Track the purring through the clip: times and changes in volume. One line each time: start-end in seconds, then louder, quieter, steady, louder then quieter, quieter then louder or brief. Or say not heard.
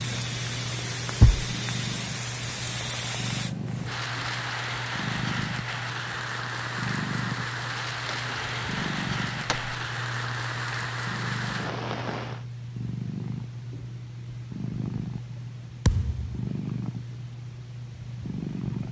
0.0-18.8 steady.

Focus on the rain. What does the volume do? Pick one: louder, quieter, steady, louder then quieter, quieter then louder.
steady.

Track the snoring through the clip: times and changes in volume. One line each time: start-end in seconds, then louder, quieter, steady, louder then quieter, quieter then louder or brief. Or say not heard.
not heard.